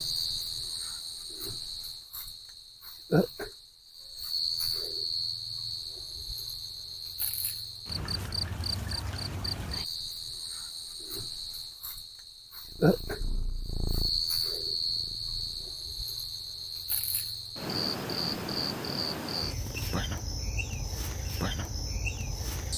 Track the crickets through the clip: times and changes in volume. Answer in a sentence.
The crickets can be heard from 0.0 to 22.7 s, at a steady volume.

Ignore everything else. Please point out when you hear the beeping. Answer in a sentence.
You can't hear the beeping here.